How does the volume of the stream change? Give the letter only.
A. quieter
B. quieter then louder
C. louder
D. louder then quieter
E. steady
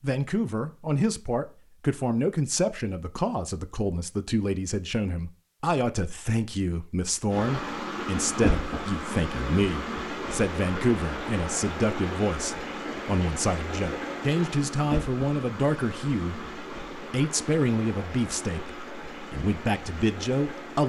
A.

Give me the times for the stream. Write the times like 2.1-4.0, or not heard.
7.3-20.8.